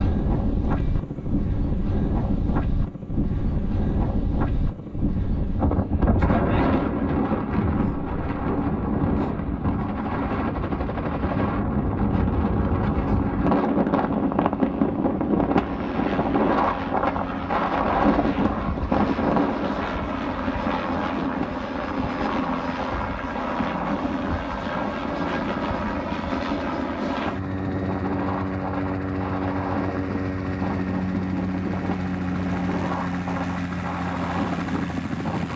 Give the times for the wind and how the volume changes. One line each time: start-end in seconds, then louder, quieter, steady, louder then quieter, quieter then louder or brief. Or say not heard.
0.0-35.5 quieter.